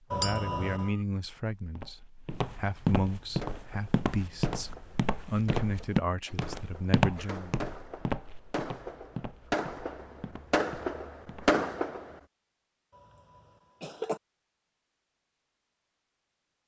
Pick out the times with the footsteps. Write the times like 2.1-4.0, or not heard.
1.6-11.6.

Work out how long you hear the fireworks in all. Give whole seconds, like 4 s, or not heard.
9 s.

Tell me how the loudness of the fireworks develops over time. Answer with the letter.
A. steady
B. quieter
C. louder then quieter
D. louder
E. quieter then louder
D.